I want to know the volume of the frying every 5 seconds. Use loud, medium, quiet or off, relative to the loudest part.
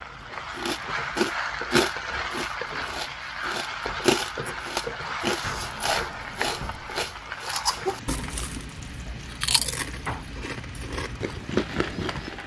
loud, loud, medium.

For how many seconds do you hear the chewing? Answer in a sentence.
The chewing can be heard for 12 seconds in total.